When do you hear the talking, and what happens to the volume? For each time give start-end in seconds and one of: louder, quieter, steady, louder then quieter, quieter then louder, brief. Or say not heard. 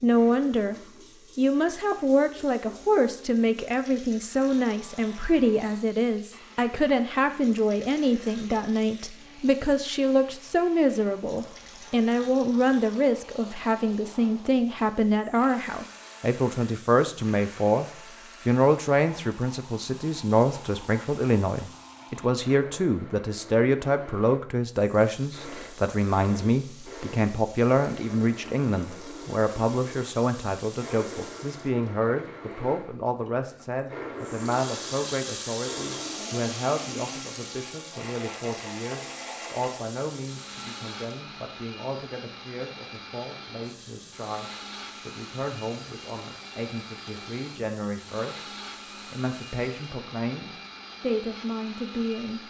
0.0-0.8 brief
1.4-52.4 quieter.